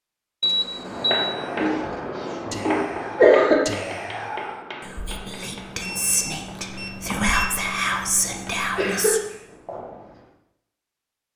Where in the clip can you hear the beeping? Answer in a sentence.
The beeping can be heard from 0.4 to 1.4 s and from 5.8 to 7.6 s.